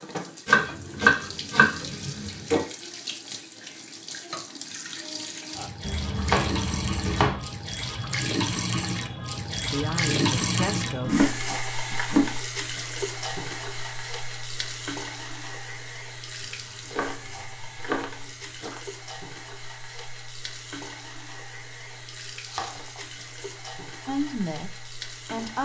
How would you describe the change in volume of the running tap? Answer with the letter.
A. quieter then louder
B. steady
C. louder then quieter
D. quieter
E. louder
C.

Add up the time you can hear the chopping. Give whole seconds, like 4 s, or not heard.
8 s.